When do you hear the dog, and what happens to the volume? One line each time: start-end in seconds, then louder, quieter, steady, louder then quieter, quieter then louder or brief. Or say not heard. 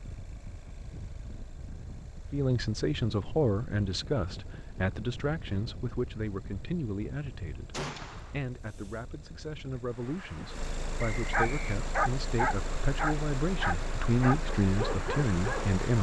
11.3-15.8 quieter.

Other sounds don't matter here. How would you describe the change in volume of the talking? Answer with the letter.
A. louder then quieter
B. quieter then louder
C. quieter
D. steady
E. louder
B.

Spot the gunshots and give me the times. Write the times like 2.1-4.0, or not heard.
7.7-8.4.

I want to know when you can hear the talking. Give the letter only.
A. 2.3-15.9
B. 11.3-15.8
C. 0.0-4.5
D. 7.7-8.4
A.